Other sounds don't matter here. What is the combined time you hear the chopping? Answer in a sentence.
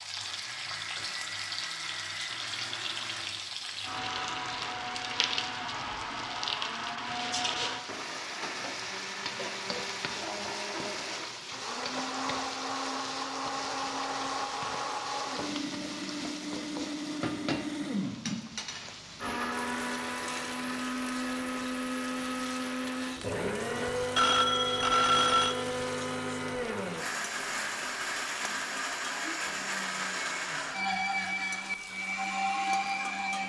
The chopping can't be heard in this clip.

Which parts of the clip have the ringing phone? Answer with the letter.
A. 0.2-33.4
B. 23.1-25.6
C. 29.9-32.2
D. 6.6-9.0
B.